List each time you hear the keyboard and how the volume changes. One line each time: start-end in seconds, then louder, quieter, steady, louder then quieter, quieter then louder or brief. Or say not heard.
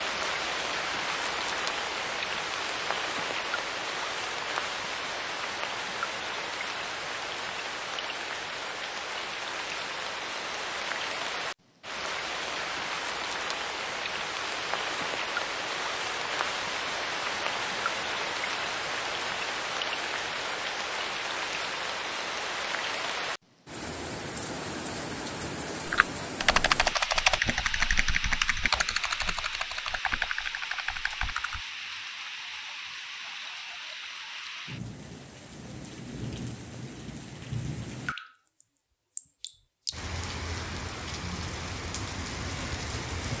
25.9-31.6 quieter.